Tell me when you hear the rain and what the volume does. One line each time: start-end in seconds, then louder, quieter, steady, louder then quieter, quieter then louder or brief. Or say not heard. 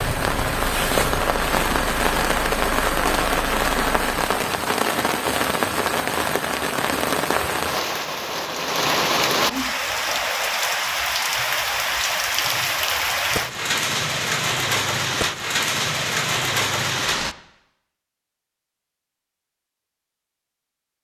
0.0-17.4 steady.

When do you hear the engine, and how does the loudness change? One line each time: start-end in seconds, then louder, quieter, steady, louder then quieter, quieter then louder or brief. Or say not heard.
0.0-4.2 steady.